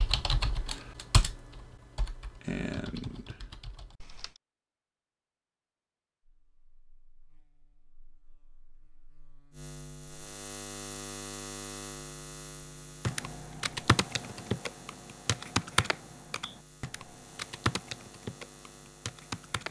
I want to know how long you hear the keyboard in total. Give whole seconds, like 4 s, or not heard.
11 s.